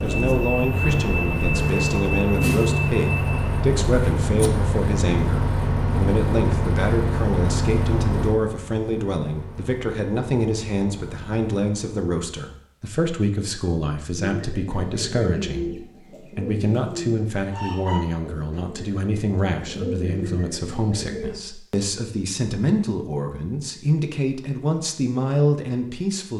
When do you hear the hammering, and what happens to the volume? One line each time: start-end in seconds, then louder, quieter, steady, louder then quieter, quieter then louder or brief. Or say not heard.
not heard.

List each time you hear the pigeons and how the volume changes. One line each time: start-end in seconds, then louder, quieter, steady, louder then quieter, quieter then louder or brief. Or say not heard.
14.2-21.4 quieter then louder.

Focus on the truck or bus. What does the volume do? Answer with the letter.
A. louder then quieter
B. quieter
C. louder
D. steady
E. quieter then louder
B.